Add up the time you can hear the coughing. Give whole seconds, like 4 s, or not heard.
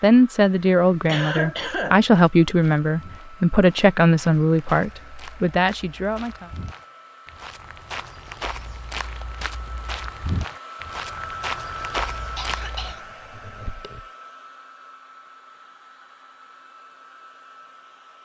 3 s.